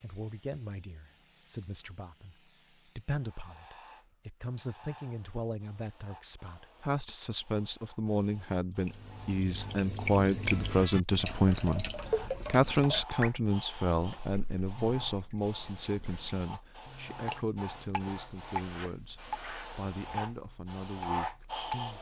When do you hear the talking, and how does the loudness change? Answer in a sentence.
You can hear the talking from 0.0 to 21.9 s, getting louder then quieter.